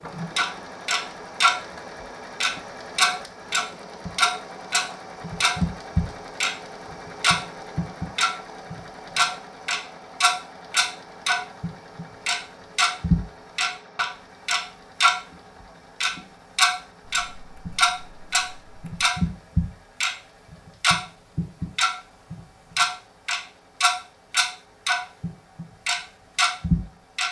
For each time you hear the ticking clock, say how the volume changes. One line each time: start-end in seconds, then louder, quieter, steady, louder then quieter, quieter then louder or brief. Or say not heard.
0.0-1.6 brief
2.4-15.2 steady
16.0-27.2 steady.